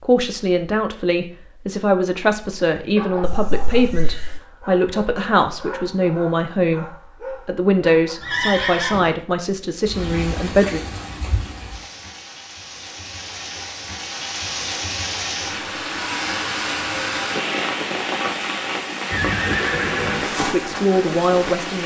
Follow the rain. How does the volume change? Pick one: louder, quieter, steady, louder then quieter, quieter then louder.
louder.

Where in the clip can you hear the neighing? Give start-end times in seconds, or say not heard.
3.2-4.4, 8.2-9.1, 19.1-20.2.